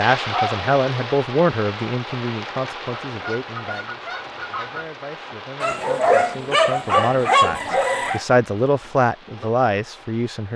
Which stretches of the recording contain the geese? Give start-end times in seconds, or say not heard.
3.1-4.9.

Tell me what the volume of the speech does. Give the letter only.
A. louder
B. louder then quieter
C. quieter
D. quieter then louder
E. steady
D.